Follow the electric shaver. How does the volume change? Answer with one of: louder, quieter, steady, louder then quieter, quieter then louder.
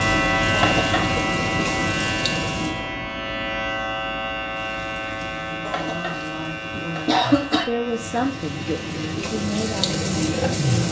quieter.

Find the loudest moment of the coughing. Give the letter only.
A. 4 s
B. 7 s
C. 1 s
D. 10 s
B.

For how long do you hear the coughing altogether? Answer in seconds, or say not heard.
2 s.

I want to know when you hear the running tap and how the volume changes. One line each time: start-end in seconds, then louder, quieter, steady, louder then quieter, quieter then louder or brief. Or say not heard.
0.0-2.9 brief
4.4-10.8 louder.